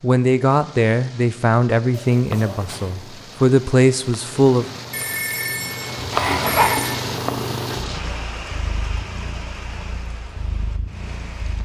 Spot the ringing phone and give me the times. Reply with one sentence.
You can hear the ringing phone from 4.9 to 7.0 s.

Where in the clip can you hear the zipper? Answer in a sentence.
You can hear the zipper from 1.9 to 2.8 s and from 6.0 to 6.7 s.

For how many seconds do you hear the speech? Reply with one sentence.
You can hear the speech for 5 seconds altogether.